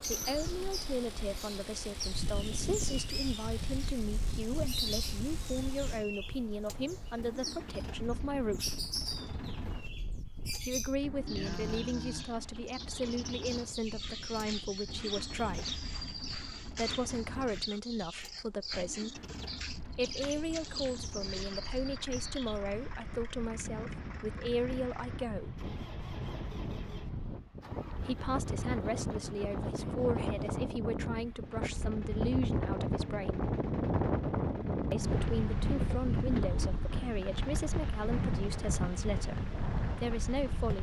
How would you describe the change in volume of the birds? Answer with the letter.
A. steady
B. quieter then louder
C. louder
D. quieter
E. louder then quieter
A.